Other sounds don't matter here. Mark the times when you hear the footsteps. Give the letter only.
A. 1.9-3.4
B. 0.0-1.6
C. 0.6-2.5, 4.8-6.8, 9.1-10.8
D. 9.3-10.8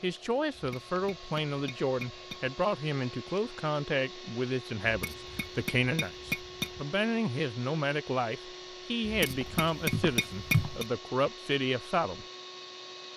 D.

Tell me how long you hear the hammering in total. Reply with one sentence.
The hammering can be heard for 6 seconds in total.